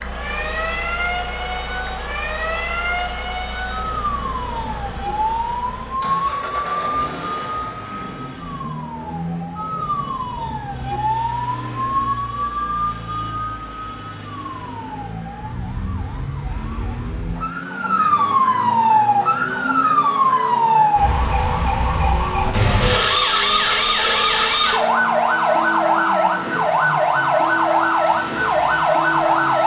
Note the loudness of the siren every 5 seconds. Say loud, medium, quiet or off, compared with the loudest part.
medium, medium, medium, loud, loud, loud.